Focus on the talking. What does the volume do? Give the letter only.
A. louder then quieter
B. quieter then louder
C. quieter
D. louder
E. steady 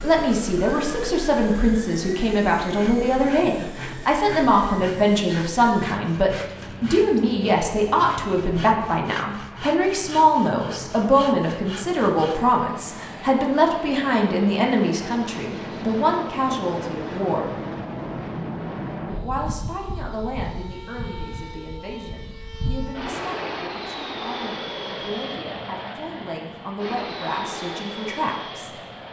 C.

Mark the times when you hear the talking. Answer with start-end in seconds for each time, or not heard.
0.0-17.6, 19.2-28.8.